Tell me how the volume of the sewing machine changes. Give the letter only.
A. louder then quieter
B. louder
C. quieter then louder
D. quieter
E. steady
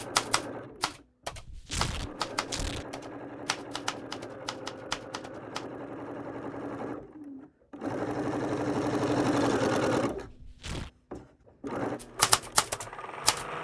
A.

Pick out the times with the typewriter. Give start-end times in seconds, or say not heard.
0.0-5.7, 12.0-13.4.